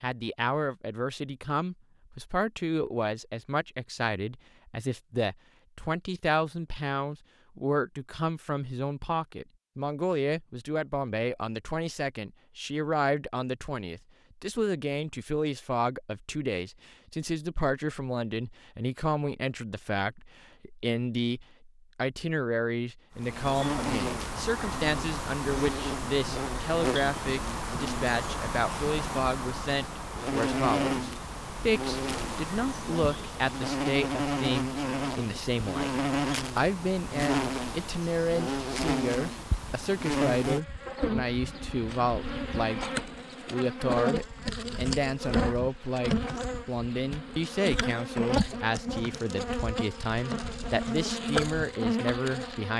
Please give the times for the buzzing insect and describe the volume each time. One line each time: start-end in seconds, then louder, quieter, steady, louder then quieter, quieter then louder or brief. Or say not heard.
23.1-52.7 steady.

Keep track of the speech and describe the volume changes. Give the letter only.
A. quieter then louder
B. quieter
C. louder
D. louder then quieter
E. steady
E.